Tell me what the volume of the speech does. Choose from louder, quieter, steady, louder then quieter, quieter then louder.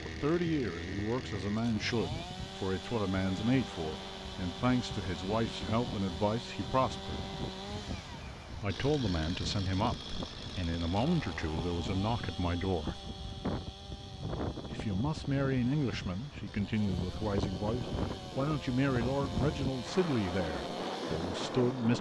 steady.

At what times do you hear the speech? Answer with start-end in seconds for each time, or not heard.
0.0-7.2, 8.6-13.0, 14.7-21.9.